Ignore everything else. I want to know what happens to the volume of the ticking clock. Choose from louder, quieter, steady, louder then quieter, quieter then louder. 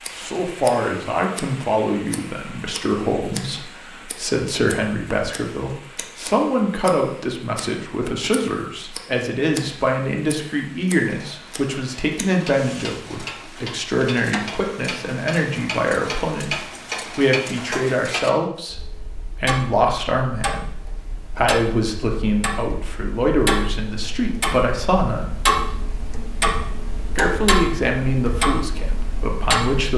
louder.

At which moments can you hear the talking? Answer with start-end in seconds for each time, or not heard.
0.1-20.6, 21.4-25.4, 27.1-29.9.